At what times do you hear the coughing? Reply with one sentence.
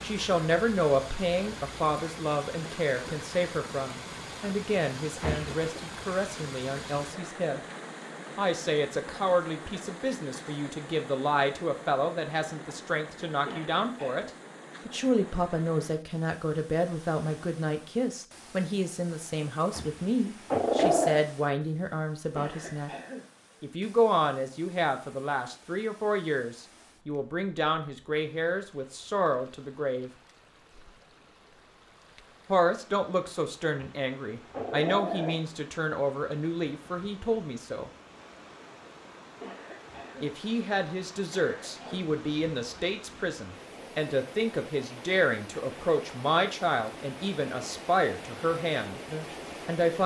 The coughing can be heard from 13.4 to 14.3 s, from 22.4 to 23.3 s, from 39.4 to 40.4 s and from 41.3 to 42.1 s.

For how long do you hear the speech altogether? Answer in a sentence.
The speech can be heard for 44 seconds in total.